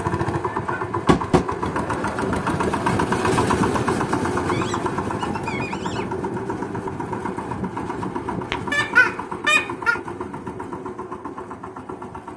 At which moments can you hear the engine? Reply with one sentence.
You can hear the engine from 0.0 to 12.3 s.